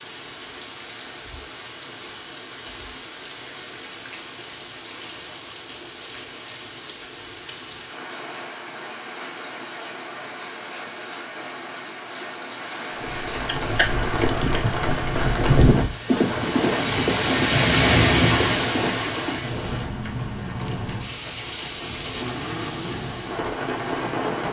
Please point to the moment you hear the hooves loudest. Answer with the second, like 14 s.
16 s.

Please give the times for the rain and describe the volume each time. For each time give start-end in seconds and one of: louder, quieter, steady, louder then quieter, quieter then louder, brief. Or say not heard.
0.0-24.4 louder then quieter.